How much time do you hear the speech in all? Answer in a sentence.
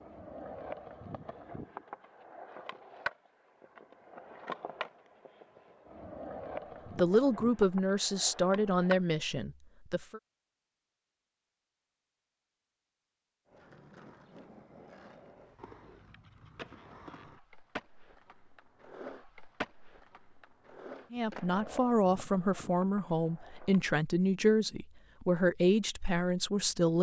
You can hear the speech for 9 seconds altogether.